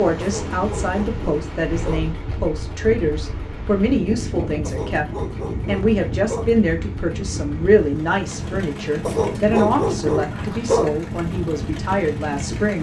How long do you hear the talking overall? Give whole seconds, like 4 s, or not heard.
13 s.